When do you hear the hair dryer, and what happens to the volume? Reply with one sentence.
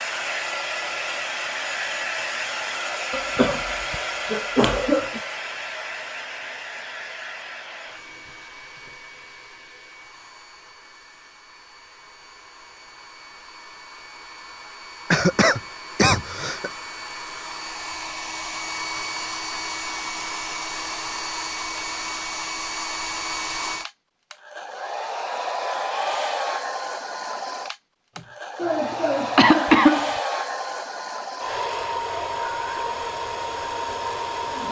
You can hear the hair dryer from 0.0 to 34.6 s, getting quieter then louder.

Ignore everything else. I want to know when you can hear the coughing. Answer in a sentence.
You can hear the coughing from 3.1 to 5.2 s, from 15.1 to 16.7 s and from 28.1 to 30.1 s.